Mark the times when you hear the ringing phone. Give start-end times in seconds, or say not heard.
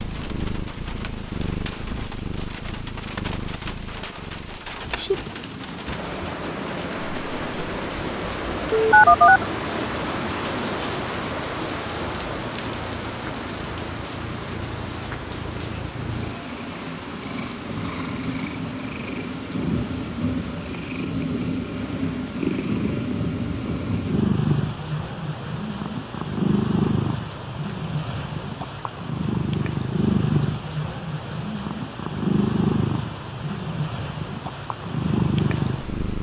8.7-9.4.